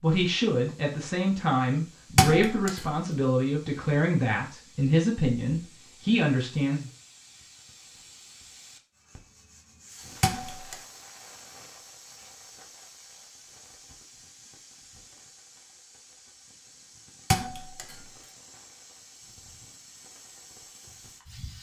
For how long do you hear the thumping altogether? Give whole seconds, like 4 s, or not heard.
2 s.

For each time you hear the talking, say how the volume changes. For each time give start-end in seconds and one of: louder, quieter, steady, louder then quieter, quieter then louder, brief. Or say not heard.
0.0-6.8 steady.